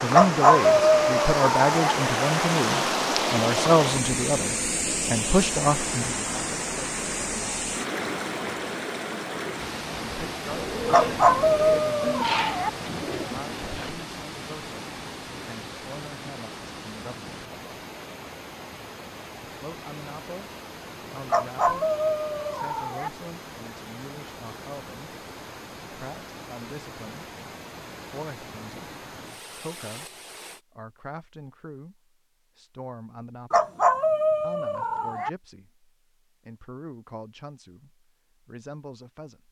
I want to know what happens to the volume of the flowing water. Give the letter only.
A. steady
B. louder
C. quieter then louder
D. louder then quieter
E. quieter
E.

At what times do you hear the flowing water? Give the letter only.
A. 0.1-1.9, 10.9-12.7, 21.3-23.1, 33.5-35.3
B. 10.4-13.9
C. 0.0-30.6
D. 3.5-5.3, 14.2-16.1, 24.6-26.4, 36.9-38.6
C.